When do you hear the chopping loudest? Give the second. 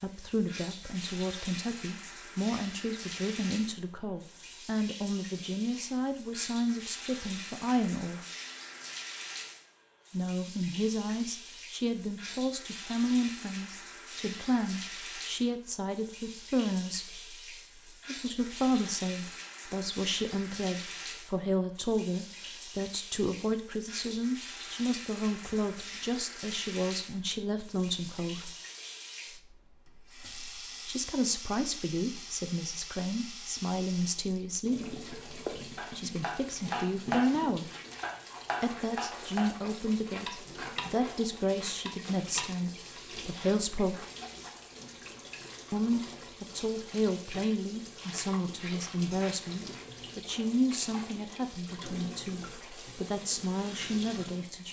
37 s.